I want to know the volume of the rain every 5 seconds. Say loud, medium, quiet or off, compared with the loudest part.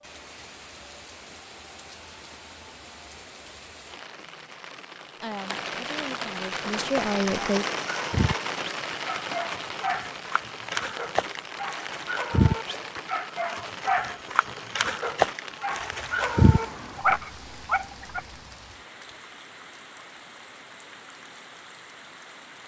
quiet, loud, medium, medium, quiet.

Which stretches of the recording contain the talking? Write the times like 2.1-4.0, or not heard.
5.2-7.7.